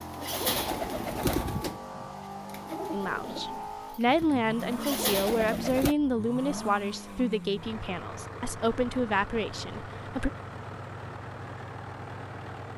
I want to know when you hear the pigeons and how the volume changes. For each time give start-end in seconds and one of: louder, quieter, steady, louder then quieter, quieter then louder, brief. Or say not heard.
0.0-6.0 quieter then louder.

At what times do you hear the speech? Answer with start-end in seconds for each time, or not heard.
2.9-10.3.